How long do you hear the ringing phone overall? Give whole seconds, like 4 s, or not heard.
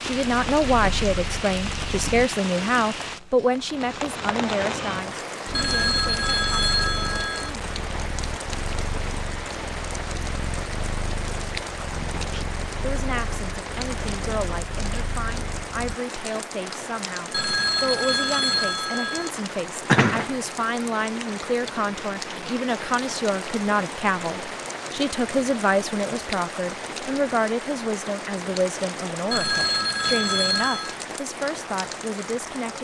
6 s.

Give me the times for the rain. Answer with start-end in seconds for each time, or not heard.
0.0-32.7.